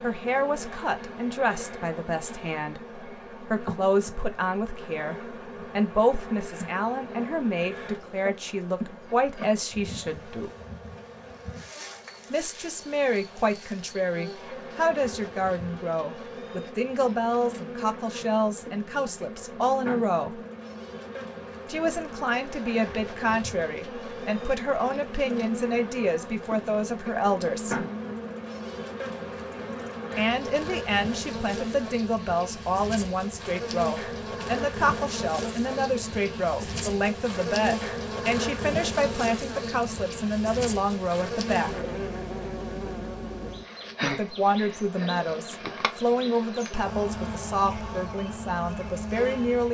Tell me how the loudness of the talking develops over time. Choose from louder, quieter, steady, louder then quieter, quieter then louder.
steady.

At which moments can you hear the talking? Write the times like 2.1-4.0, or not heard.
0.0-10.5, 12.3-20.4, 21.6-27.9, 30.1-41.8, 44.0-49.6.